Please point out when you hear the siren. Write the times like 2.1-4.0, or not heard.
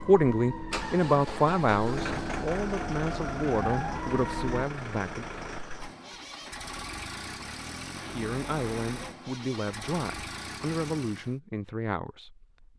0.0-4.7.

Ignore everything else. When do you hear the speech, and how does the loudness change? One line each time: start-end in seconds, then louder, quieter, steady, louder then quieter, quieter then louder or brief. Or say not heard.
0.0-5.2 quieter
8.0-12.4 steady.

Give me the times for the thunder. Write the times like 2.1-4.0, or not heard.
not heard.